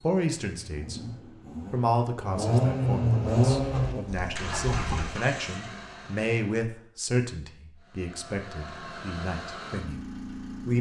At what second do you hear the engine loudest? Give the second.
3 s.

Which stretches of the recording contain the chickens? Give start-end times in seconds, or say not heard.
3.5-5.2.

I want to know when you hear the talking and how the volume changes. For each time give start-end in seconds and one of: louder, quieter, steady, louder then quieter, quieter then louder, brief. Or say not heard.
0.0-1.0 brief
1.7-10.1 louder then quieter.